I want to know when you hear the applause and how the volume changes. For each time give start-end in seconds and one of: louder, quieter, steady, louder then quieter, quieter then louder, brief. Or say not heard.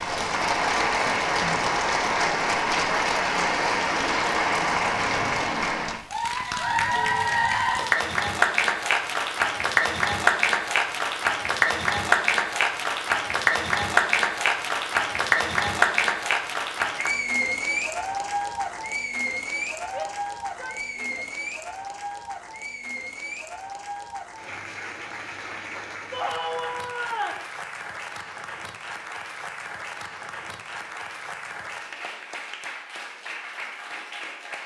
0.0-34.6 quieter.